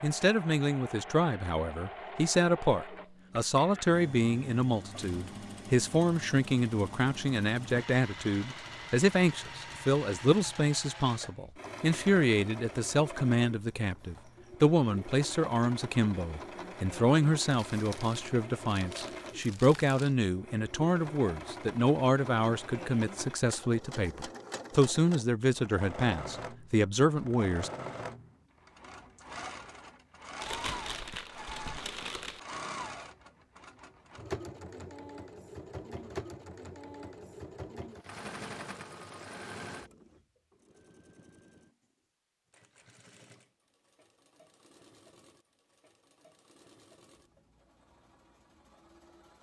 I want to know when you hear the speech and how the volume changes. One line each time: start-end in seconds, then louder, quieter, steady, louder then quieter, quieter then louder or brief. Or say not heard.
0.0-27.7 steady.